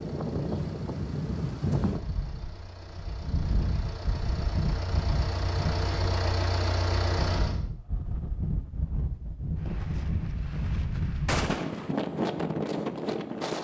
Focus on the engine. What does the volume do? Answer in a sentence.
The loudness of the engine goes up.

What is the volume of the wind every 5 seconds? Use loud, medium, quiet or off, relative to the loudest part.
loud, medium, loud.